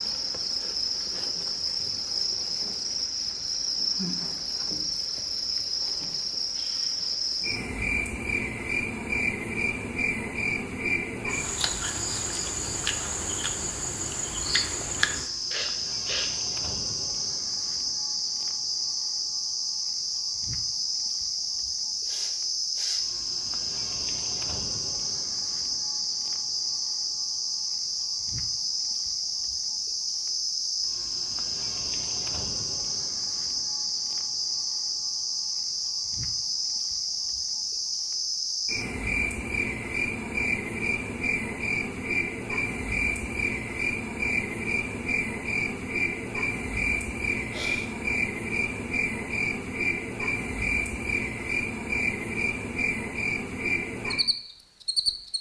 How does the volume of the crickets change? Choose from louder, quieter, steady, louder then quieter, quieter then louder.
steady.